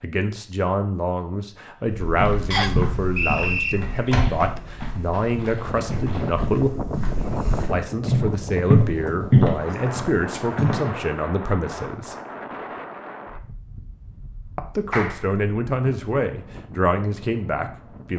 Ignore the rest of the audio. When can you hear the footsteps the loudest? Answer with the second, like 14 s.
9 s.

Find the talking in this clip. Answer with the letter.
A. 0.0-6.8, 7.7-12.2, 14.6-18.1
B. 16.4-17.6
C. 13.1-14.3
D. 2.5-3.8
A.